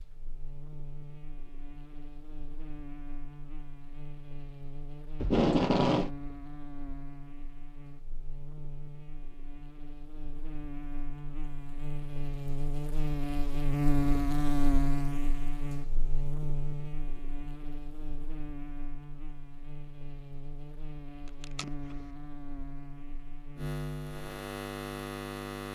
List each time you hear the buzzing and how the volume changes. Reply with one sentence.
You can hear the buzzing from 0.0 to 25.7 s, getting louder then quieter.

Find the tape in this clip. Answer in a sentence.
You can hear the tape from 5.2 to 6.1 s and from 21.4 to 21.9 s.